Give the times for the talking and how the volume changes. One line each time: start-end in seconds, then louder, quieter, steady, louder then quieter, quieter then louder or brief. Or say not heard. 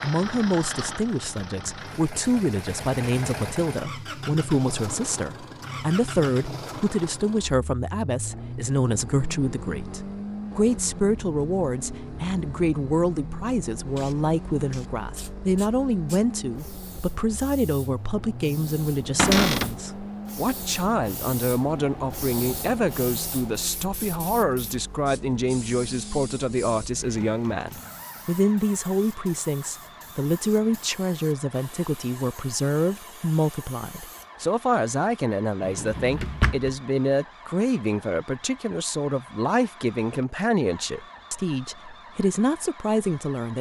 0.0-43.5 steady.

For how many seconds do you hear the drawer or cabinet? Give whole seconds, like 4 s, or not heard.
2 s.